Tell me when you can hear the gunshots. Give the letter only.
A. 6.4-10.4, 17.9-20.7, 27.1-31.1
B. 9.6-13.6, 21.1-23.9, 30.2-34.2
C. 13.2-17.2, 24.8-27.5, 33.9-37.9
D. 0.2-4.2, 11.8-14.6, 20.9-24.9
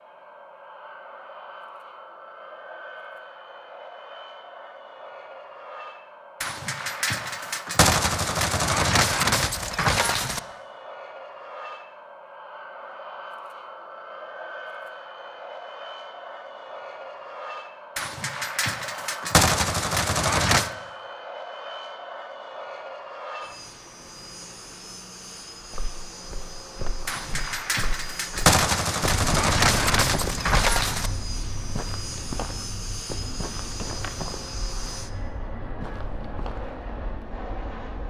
A.